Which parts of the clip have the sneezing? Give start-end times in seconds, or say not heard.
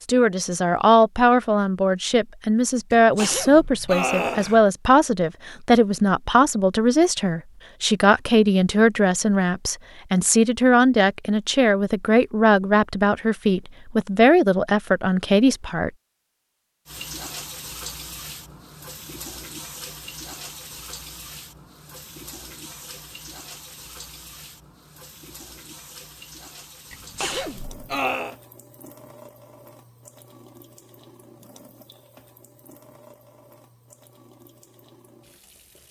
3.0-4.6, 26.9-28.4.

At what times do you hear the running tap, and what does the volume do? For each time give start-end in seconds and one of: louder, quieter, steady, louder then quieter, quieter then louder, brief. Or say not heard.
16.9-35.8 quieter.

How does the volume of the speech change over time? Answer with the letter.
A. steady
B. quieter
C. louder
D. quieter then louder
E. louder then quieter
A.